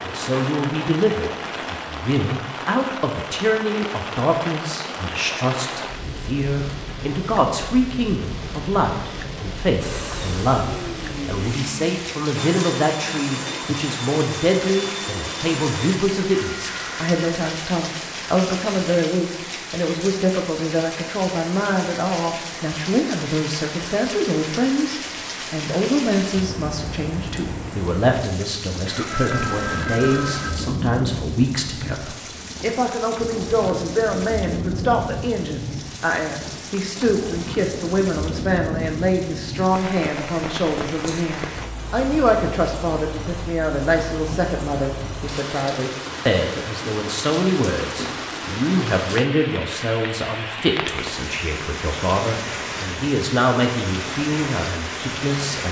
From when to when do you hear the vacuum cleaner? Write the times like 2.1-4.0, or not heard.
9.8-16.0.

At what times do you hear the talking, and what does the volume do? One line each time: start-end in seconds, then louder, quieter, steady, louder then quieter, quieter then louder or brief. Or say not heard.
0.0-55.6 steady.